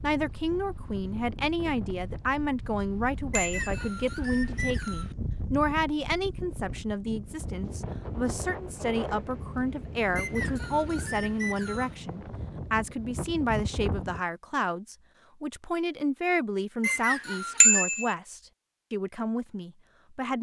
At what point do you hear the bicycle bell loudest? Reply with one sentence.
The volume of the bicycle bell peaks at 18 seconds.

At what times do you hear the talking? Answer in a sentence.
The talking can be heard from 0.0 to 20.3 s.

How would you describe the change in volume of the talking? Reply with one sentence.
The volume of the talking stays about the same.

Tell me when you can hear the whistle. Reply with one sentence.
The whistle can be heard from 3.3 to 5.2 s, from 10.2 to 11.9 s and from 16.8 to 17.9 s.